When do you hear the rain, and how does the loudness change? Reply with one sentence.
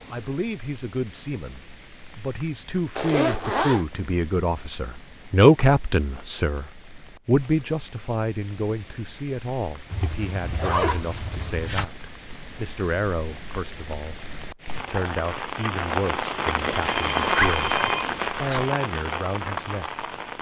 The rain can be heard from 0.0 to 20.3 s, getting louder.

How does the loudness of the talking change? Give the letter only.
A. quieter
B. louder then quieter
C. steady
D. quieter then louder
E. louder
B.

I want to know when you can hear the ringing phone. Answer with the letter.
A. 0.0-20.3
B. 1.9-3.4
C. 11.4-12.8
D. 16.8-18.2
D.